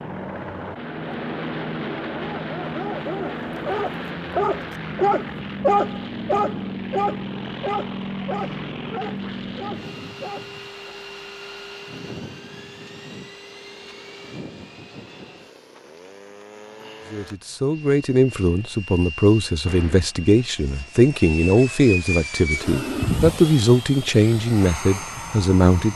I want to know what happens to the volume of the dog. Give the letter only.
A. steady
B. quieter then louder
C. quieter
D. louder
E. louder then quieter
E.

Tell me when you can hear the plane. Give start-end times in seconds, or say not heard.
0.0-25.9.